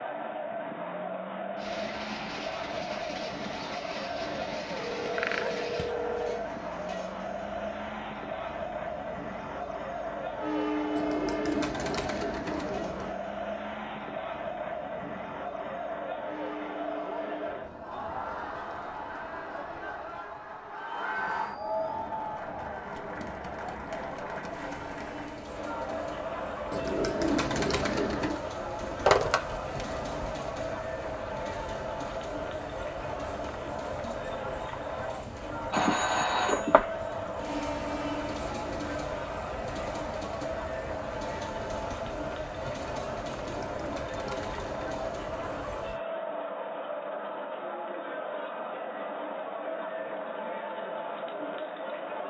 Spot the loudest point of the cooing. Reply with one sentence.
The volume of the cooing peaks at 27 seconds.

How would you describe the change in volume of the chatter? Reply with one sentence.
The volume of the chatter stays about the same.